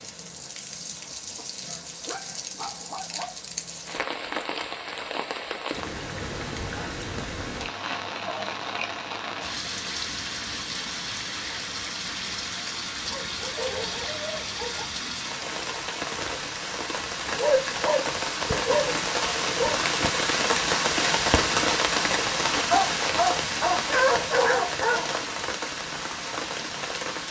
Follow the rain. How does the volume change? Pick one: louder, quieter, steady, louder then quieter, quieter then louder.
louder.